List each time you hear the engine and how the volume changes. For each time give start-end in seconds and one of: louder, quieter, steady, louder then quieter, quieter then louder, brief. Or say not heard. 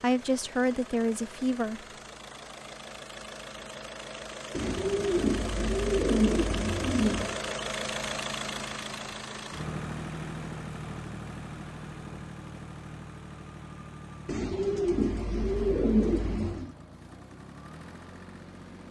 0.0-18.8 louder then quieter.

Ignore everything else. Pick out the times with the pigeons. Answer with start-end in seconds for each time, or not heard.
4.5-7.4, 14.2-16.7.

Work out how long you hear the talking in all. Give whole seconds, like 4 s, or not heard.
2 s.